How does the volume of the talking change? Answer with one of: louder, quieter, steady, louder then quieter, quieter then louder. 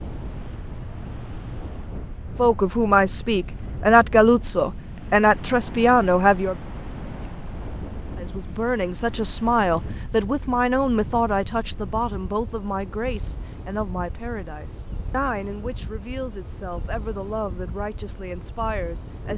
quieter.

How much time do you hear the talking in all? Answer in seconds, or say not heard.
15 s.